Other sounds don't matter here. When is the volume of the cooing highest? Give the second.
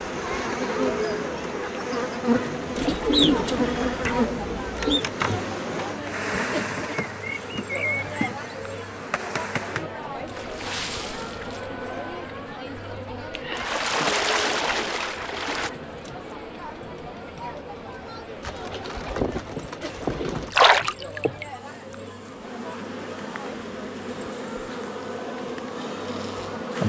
3 s.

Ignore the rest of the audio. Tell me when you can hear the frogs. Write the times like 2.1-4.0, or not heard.
not heard.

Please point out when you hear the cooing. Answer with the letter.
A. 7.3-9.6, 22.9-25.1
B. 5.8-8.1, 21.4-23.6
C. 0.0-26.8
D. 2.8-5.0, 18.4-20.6
D.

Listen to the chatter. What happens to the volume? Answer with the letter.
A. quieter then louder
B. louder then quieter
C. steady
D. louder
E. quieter
E.